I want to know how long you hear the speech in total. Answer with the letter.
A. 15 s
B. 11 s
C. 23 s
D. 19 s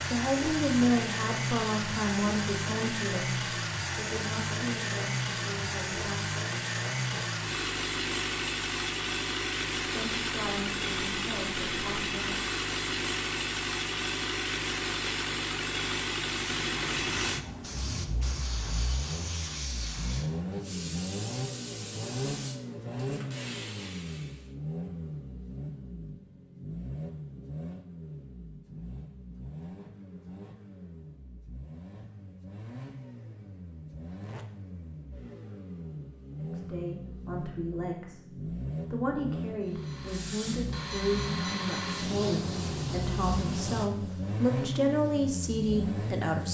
D.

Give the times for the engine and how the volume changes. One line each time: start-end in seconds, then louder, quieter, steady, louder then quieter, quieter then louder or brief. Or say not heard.
0.0-46.5 quieter then louder.